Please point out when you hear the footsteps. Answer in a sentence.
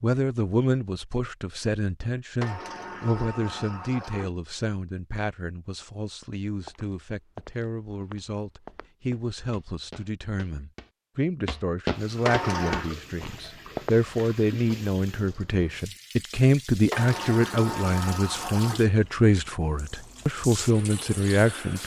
You can hear the footsteps from 6.7 to 14.0 s.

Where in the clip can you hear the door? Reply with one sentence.
You can hear the door from 2.4 to 4.3 s, from 12.2 to 12.9 s and from 16.9 to 18.9 s.